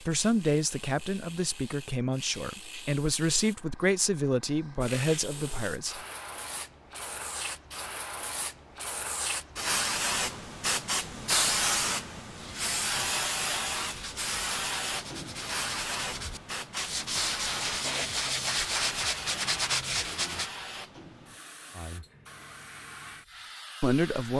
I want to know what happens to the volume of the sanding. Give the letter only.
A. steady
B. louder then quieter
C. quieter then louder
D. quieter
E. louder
E.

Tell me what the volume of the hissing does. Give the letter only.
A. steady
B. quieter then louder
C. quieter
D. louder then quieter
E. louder
D.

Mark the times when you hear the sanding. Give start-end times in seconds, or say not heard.
12.3-20.5.